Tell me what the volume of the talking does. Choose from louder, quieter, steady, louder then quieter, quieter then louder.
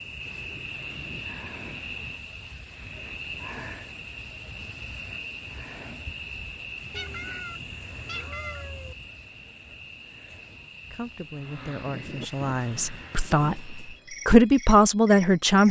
louder.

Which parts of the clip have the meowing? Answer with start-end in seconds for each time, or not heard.
6.9-8.9.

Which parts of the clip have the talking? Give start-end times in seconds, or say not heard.
10.9-15.6.